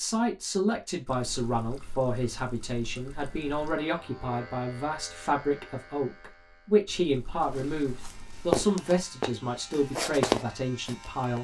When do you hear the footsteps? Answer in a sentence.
You can hear the footsteps from 7.5 to 11.3 s.